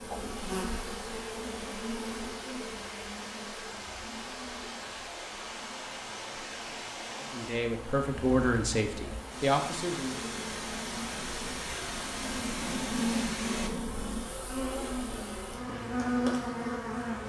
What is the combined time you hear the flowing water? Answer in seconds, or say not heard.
14 s.